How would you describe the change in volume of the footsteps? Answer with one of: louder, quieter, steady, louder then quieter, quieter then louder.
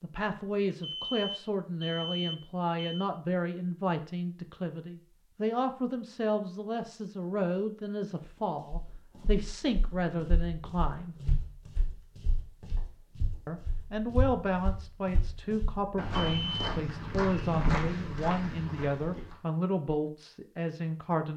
louder.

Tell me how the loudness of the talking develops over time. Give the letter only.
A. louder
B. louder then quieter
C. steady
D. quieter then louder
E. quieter
C.